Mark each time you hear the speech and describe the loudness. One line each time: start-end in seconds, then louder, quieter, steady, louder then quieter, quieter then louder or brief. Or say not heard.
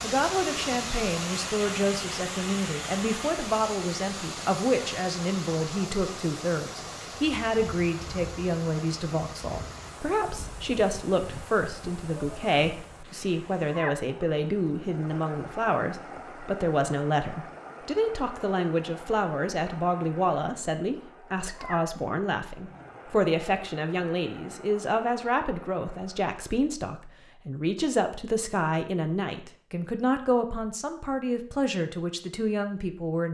0.0-33.3 steady.